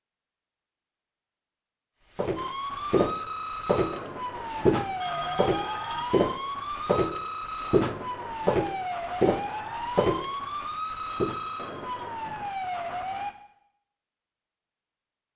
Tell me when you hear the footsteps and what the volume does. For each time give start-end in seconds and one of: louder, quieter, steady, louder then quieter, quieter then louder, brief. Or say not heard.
2.1-11.3 steady.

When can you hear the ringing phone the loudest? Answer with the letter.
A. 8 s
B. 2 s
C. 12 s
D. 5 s
D.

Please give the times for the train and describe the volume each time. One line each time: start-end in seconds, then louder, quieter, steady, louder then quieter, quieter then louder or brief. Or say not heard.
not heard.